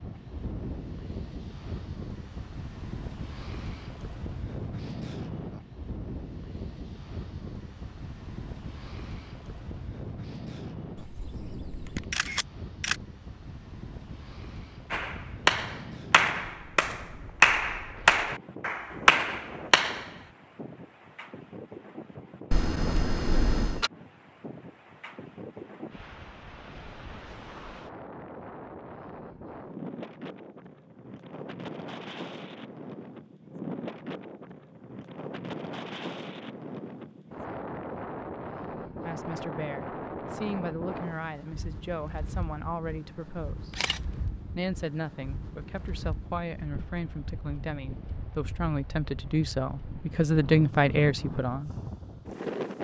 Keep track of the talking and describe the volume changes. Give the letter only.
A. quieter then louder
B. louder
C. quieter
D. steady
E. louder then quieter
B.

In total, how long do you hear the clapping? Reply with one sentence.
The clapping can be heard for 5 seconds in total.